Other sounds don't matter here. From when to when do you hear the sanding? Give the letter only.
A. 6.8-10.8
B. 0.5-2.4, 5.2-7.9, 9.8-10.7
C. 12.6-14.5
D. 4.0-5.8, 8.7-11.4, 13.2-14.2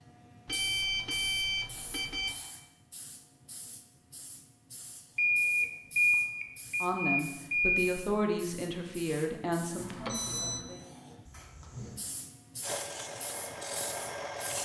C.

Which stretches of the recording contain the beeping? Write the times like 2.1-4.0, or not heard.
0.5-2.4, 5.2-7.9, 9.8-10.7.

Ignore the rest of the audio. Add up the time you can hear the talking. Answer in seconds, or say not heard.
4 s.